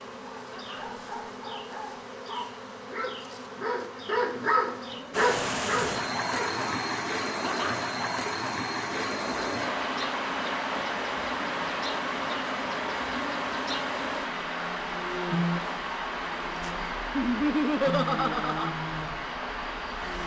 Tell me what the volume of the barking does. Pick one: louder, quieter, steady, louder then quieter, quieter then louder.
louder.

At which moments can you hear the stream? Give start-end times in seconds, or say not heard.
5.1-20.2.